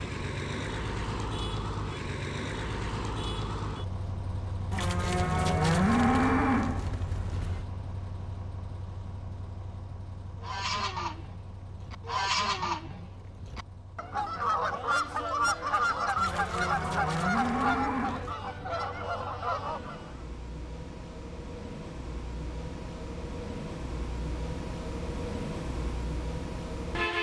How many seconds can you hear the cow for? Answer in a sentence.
The cow can be heard for 5 seconds in total.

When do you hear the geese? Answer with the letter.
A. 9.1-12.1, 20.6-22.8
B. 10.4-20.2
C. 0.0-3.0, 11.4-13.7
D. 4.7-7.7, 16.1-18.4
B.